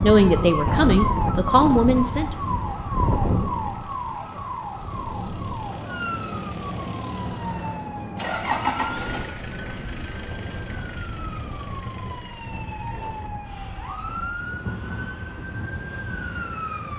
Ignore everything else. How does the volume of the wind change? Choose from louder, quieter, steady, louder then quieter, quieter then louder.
quieter.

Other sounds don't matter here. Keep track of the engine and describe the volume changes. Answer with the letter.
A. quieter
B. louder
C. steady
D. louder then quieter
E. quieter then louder
D.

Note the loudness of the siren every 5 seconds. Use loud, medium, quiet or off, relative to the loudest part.
loud, medium, medium, medium.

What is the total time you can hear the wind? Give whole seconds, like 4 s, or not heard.
17 s.